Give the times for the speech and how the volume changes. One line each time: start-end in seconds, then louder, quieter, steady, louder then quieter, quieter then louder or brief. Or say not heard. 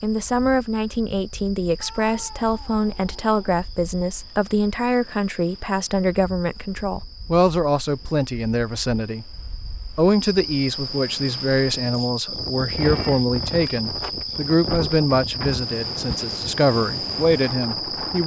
0.0-9.2 steady
9.9-18.2 steady.